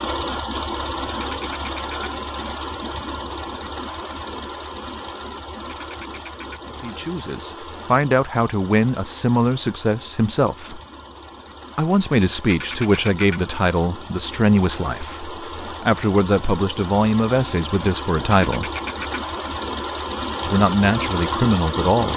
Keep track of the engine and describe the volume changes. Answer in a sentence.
The loudness of the engine goes down, then up.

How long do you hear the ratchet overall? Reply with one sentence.
The ratchet can be heard for 4 seconds in total.